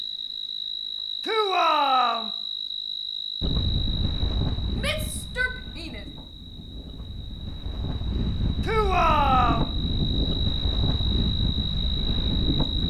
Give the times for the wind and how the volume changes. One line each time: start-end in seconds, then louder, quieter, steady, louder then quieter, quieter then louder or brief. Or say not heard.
3.4-12.8 quieter then louder.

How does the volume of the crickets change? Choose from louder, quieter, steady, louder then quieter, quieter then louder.
quieter then louder.